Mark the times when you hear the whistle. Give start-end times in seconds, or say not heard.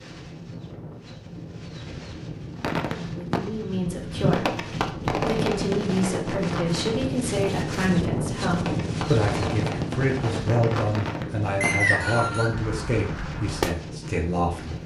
11.6-12.5.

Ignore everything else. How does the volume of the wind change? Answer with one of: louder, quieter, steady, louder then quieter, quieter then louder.
louder then quieter.